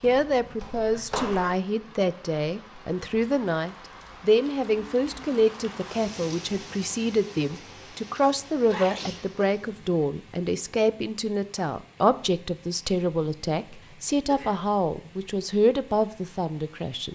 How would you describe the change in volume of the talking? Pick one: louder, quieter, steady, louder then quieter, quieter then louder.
steady.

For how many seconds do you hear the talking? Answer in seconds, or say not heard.
17 s.